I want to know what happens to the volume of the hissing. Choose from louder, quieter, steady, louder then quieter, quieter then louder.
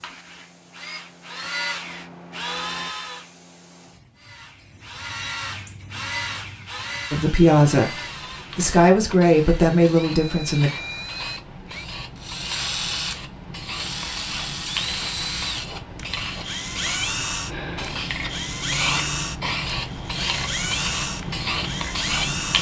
louder.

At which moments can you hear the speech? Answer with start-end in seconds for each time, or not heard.
7.1-10.7.